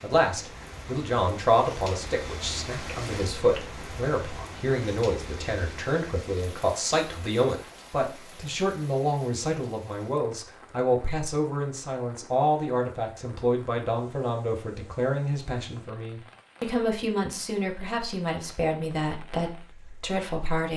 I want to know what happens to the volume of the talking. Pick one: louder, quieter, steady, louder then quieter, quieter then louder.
steady.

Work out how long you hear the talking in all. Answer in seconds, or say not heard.
21 s.